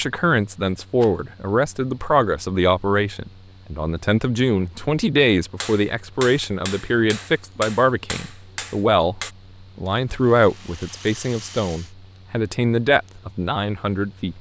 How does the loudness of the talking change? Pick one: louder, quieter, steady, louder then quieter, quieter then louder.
steady.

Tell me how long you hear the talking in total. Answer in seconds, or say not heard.
14 s.